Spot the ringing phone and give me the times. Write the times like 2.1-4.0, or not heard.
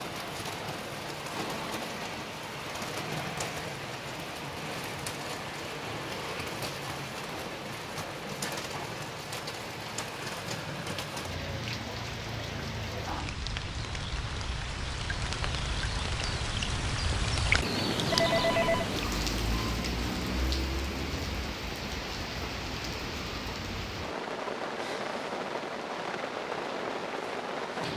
18.1-18.9.